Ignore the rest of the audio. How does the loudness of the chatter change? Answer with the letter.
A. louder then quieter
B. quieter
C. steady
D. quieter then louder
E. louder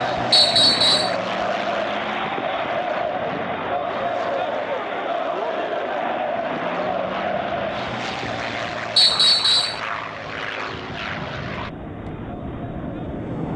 B.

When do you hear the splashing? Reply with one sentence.
You can't hear the splashing here.